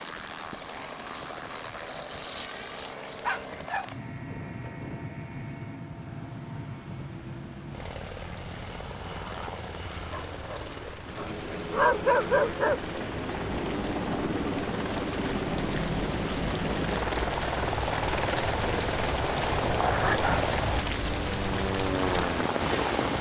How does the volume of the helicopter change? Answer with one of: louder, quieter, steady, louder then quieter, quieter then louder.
louder.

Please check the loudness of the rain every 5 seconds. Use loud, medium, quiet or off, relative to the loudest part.
quiet, quiet, medium, loud, loud.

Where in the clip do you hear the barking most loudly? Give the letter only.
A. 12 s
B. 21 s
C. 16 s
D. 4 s
A.